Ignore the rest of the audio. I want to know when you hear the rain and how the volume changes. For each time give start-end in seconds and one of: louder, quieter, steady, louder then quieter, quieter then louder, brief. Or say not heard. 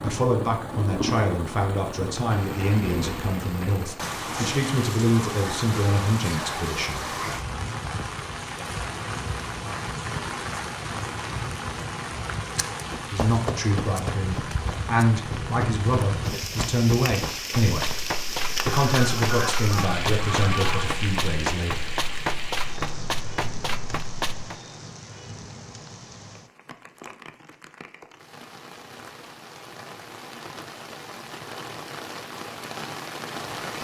0.0-33.7 quieter.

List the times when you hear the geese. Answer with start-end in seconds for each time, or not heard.
18.6-20.9.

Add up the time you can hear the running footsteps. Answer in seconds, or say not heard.
12 s.